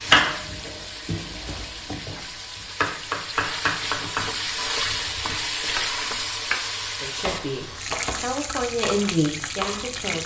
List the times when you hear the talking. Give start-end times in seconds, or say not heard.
6.9-10.2.